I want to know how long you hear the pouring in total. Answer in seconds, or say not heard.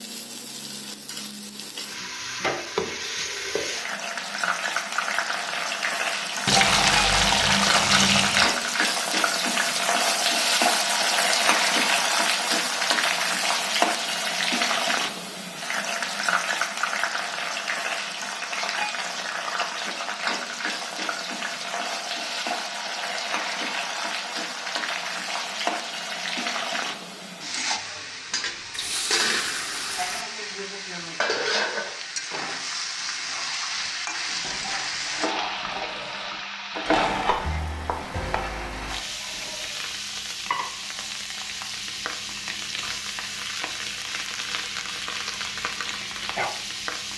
4 s.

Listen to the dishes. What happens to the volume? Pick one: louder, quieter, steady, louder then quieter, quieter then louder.
louder then quieter.